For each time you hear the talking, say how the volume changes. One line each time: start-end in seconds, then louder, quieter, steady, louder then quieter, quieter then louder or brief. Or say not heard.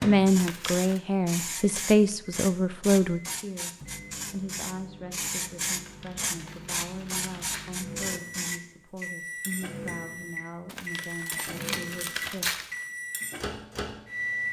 0.0-12.5 quieter.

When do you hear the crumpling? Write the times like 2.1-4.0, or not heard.
0.3-1.0, 5.8-7.8, 10.7-12.8.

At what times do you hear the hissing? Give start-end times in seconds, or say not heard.
0.1-9.1.